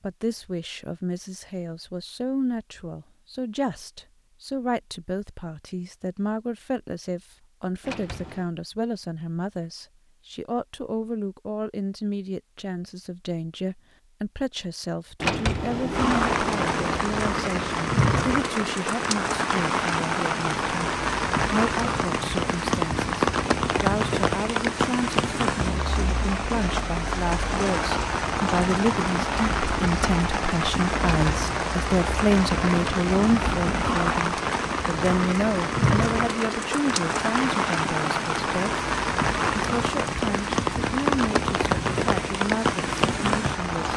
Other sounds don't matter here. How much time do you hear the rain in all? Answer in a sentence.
You can hear the rain for 28 seconds altogether.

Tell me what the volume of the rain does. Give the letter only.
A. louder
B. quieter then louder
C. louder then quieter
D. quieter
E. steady
E.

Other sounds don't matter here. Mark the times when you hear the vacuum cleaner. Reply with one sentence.
You can't hear the vacuum cleaner here.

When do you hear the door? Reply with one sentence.
The door can be heard from 7.8 to 8.4 s, from 15.2 to 17.1 s and from 31.1 to 31.5 s.